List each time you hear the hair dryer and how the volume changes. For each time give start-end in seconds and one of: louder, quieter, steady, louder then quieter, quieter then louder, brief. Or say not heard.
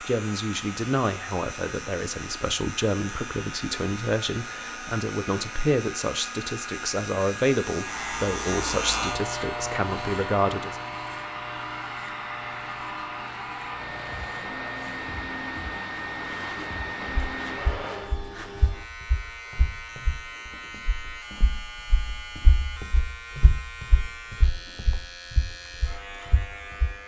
0.0-18.2 louder.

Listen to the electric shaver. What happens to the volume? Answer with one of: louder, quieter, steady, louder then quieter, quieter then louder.
louder then quieter.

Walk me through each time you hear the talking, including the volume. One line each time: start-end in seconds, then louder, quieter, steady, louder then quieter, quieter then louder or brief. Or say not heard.
0.0-10.8 steady.